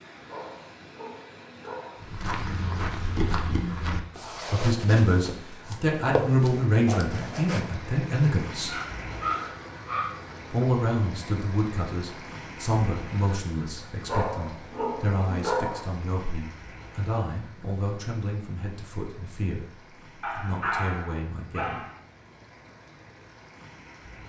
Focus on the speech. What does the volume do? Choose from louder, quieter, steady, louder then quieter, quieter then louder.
quieter.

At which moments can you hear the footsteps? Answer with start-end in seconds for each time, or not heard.
2.0-7.7.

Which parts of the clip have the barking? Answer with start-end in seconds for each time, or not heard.
0.2-2.0, 8.7-10.1, 14.1-15.8, 20.2-22.0.